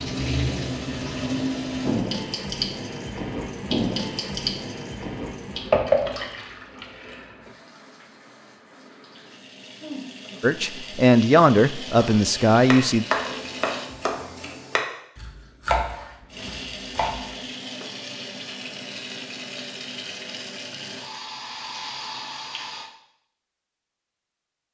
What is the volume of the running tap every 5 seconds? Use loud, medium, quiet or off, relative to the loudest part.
loud, loud, medium, medium, medium.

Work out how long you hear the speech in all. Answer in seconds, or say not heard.
3 s.